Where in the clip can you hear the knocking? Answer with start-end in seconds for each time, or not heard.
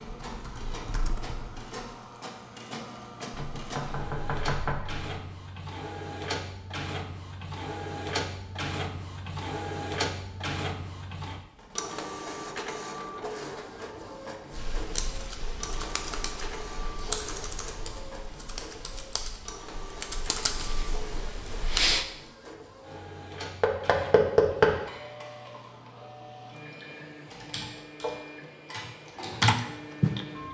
3.3-5.0, 23.6-24.8.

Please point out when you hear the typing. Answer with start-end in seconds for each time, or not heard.
0.2-1.7, 14.5-22.1, 27.2-30.2.